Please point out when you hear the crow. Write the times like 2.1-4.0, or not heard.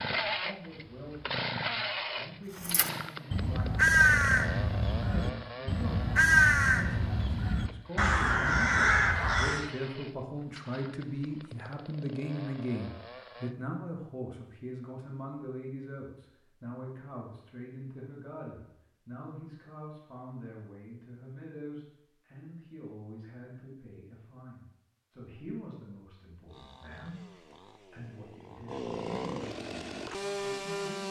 2.5-9.7.